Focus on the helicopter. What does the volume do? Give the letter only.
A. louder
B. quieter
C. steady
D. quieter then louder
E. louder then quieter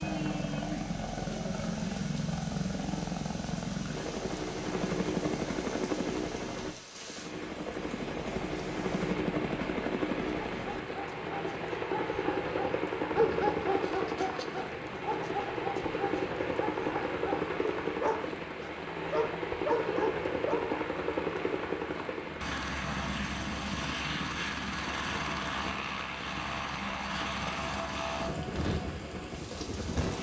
C.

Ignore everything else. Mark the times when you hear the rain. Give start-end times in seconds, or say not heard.
0.0-30.1.